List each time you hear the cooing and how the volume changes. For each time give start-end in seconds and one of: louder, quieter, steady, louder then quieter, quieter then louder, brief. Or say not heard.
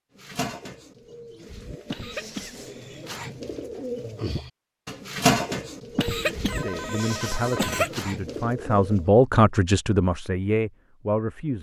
0.1-9.1 louder then quieter.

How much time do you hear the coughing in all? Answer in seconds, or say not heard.
3 s.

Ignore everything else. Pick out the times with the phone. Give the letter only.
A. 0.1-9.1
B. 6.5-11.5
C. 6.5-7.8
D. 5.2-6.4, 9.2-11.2
C.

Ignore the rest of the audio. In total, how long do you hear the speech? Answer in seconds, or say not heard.
5 s.